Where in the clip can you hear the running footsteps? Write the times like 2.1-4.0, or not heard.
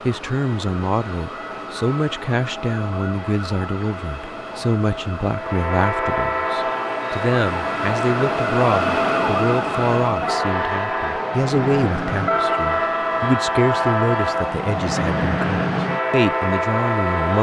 not heard.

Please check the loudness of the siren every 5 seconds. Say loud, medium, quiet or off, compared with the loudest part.
medium, loud, medium, medium.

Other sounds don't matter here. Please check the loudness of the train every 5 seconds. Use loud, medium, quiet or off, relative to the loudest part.
off, loud, loud, loud.